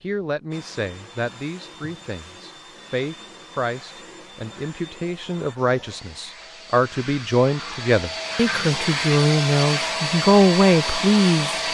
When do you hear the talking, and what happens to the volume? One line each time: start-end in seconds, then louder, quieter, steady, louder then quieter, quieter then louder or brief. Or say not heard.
0.0-11.6 louder.